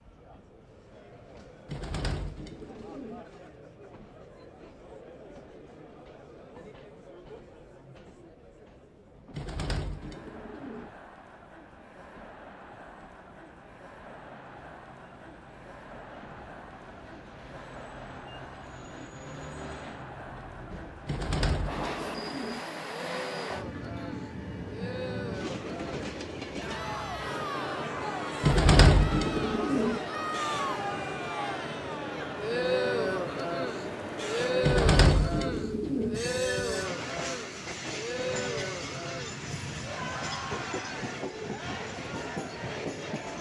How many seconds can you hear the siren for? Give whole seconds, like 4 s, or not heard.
not heard.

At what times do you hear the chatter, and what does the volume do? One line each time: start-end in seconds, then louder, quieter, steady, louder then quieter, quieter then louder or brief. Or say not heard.
0.0-43.3 louder.